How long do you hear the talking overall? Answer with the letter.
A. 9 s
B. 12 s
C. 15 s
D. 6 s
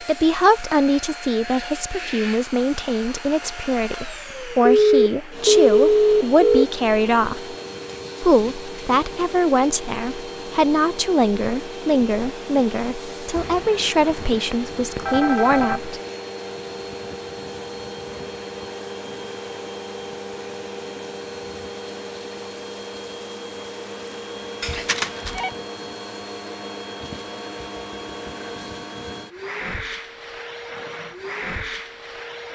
C.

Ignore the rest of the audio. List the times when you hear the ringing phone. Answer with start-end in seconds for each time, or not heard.
4.7-6.7, 13.3-15.8, 24.6-25.5.